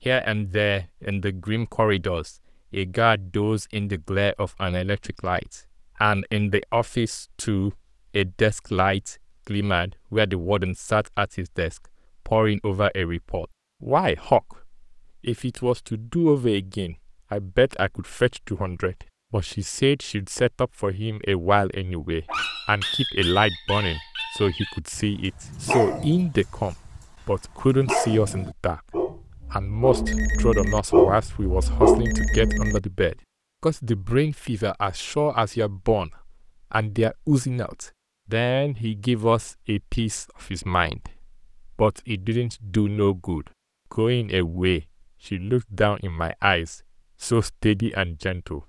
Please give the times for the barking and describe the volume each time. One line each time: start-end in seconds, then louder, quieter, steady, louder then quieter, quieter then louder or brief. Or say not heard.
22.2-32.8 louder.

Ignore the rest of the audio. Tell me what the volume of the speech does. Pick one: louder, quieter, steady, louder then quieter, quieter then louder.
steady.